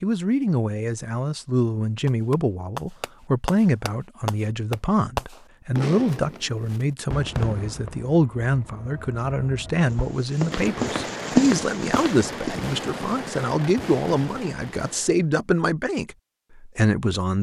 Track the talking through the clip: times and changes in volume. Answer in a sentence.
The talking can be heard from 0.0 to 17.3 s, at a steady volume.